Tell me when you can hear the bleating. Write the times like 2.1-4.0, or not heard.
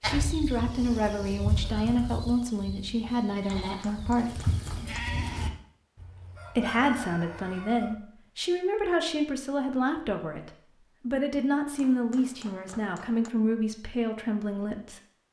0.0-5.5.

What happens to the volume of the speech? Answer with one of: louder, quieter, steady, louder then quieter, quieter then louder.
steady.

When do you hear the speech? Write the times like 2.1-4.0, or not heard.
0.1-4.5, 6.5-15.0.